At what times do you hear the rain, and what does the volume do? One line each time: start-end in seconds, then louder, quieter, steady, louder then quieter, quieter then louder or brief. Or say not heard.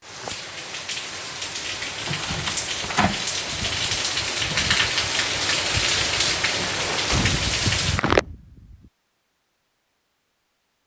0.0-8.2 louder.